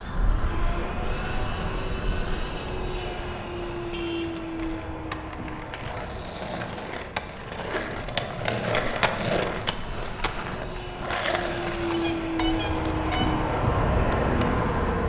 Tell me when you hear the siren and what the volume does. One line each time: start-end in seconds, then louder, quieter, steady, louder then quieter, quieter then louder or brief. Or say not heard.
not heard.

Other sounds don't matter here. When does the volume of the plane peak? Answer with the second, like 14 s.
14 s.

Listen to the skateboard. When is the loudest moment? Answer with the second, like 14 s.
9 s.